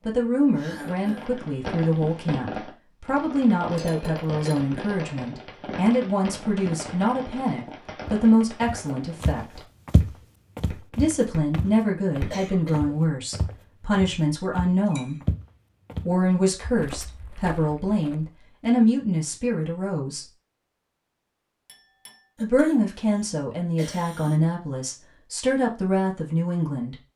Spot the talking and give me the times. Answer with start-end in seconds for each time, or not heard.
0.1-9.6, 10.9-15.2, 16.1-20.2, 22.4-26.9.